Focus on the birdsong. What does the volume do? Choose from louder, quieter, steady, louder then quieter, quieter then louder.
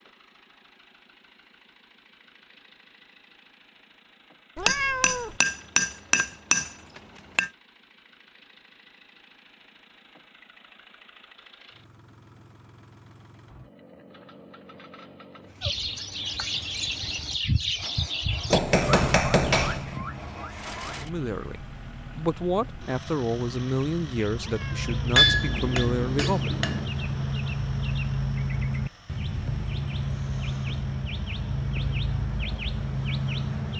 quieter then louder.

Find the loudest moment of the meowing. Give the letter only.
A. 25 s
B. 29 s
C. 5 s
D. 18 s
C.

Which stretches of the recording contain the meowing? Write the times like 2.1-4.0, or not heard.
4.5-5.4, 24.4-25.1.